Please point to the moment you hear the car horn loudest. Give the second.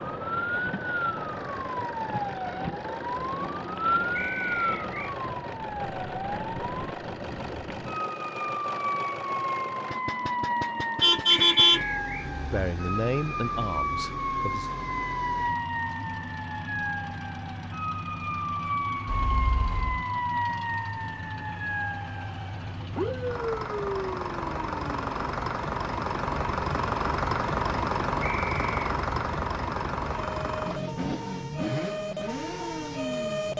12 s.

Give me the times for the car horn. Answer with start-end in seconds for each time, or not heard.
11.0-12.4, 19.1-20.1.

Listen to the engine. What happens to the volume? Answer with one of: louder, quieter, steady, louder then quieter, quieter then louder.
louder.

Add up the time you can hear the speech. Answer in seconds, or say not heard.
2 s.